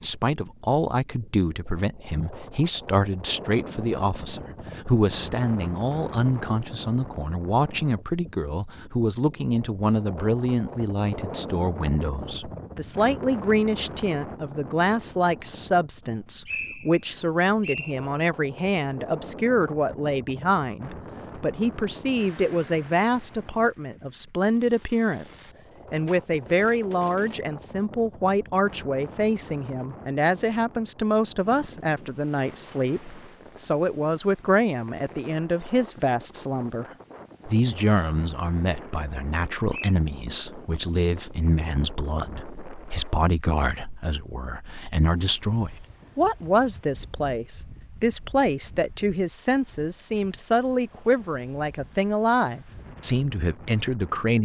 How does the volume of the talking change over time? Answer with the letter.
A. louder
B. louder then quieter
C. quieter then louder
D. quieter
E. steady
E.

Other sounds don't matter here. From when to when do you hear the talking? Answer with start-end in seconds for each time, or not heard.
0.0-36.9, 37.5-54.4.